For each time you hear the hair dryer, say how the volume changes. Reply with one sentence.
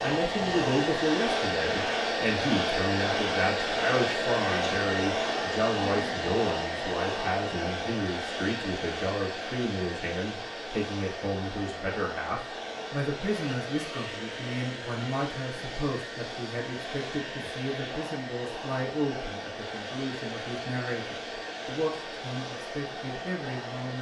The hair dryer can be heard from 0.0 to 23.9 s, getting quieter.